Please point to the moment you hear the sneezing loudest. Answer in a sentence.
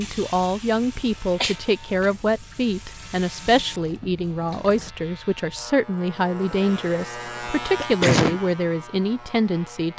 The volume of the sneezing peaks at 8 seconds.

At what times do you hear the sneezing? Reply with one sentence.
You can hear the sneezing from 1.4 to 2.1 s and from 7.8 to 8.4 s.